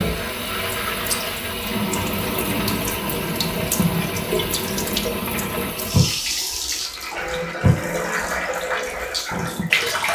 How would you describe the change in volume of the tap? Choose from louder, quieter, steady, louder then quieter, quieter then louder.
steady.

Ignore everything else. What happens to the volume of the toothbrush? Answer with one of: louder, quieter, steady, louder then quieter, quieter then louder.
steady.